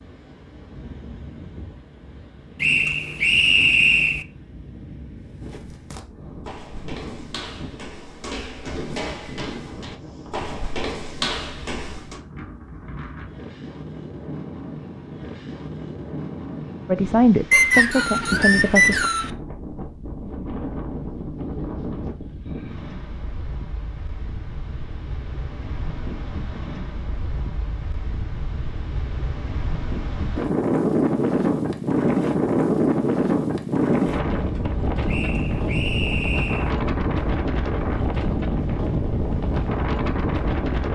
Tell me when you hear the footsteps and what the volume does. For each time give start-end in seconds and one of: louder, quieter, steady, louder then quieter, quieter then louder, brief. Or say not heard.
5.2-12.2 louder.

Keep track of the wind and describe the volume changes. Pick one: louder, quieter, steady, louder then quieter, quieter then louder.
louder.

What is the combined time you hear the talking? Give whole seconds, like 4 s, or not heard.
2 s.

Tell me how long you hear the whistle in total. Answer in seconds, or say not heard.
5 s.